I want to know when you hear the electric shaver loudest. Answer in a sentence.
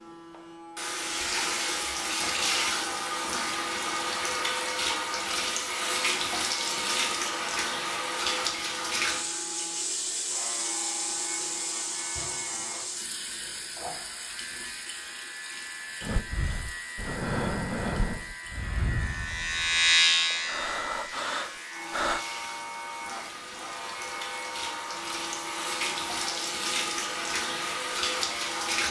The volume of the electric shaver peaks at 20 seconds.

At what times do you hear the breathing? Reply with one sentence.
You can hear the breathing from 16.0 to 22.2 s.